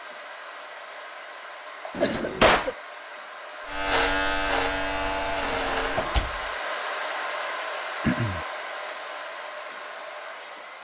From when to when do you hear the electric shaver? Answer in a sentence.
The electric shaver can be heard from 3.6 to 6.2 s.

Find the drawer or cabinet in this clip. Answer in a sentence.
The drawer or cabinet can be heard from 1.9 to 2.8 s and from 5.4 to 6.4 s.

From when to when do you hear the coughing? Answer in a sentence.
The coughing can be heard from 2.0 to 2.8 s and from 8.0 to 8.4 s.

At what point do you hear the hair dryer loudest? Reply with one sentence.
The loudest moment of the hair dryer is at 7 seconds.